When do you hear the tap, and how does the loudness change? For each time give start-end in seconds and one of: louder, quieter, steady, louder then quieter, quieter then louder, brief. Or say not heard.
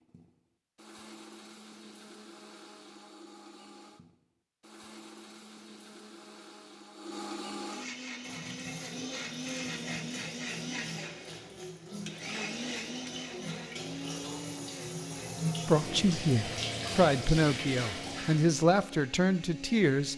7.8-18.6 louder.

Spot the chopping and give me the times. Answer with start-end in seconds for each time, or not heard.
not heard.